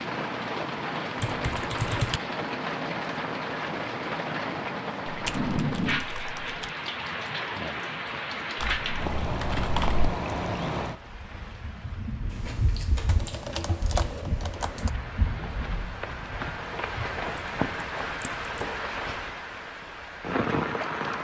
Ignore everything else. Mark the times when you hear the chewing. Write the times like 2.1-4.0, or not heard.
12.2-14.2.